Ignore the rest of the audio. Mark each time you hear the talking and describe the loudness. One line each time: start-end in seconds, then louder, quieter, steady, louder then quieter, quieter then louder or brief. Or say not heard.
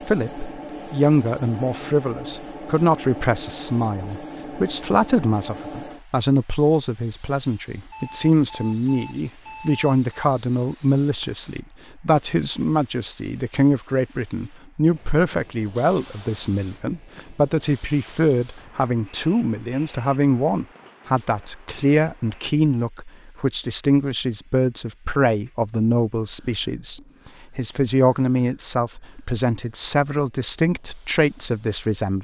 0.1-32.1 steady.